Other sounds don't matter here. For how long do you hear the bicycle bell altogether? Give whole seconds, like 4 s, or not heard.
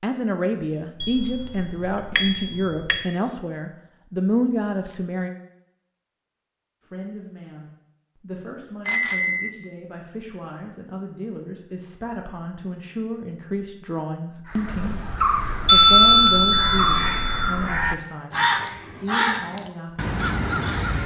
5 s.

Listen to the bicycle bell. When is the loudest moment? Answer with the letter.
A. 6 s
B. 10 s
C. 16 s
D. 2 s
C.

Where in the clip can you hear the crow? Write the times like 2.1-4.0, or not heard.
14.4-21.0.